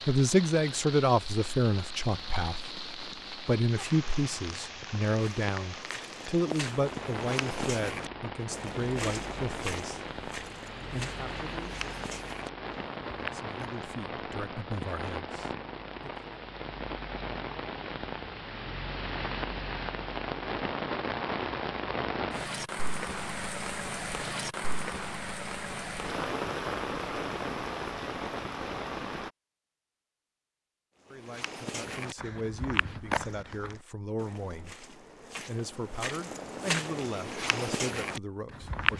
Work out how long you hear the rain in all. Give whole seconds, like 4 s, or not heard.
29 s.